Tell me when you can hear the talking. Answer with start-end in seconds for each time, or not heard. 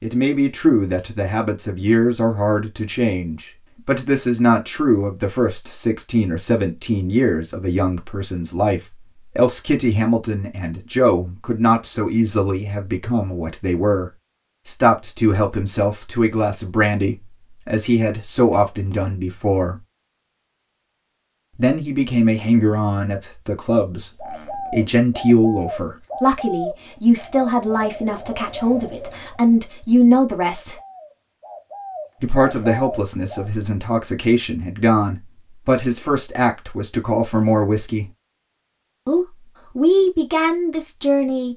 0.0-19.8, 21.6-30.8, 32.2-38.0, 39.0-41.5.